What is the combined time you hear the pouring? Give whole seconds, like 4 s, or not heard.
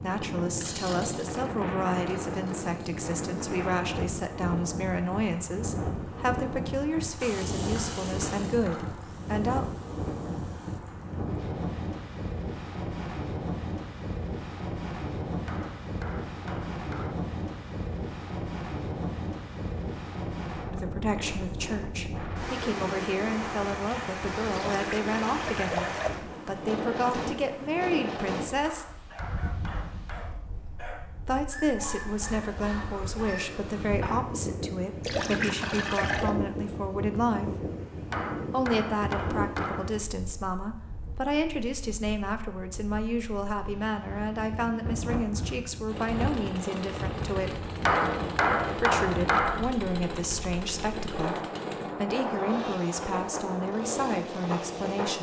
3 s.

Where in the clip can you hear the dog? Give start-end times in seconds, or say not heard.
29.1-34.5.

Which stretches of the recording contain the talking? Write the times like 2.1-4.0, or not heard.
0.0-9.7, 20.7-28.9, 31.2-37.7, 38.5-47.7, 48.8-55.1.